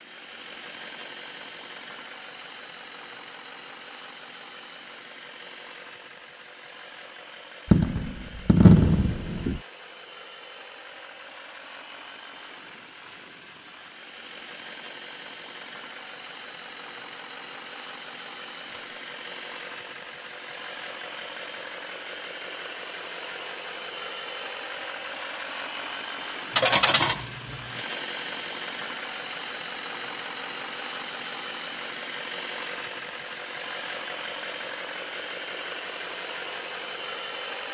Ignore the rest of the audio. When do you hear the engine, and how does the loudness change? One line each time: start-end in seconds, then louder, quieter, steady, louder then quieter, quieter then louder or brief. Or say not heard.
0.0-37.6 louder.